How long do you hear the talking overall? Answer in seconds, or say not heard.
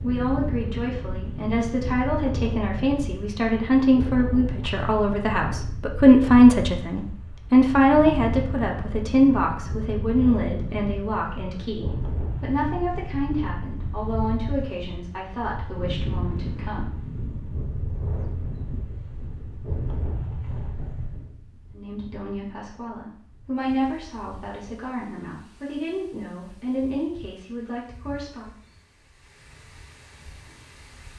24 s.